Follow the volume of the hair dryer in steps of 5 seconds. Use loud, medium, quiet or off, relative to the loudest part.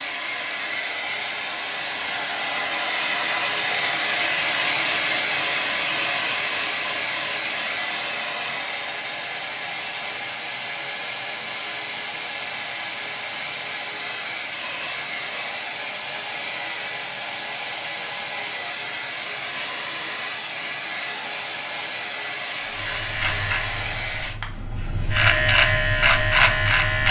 loud, loud, medium, medium, medium, off.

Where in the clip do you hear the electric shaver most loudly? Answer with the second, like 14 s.
26 s.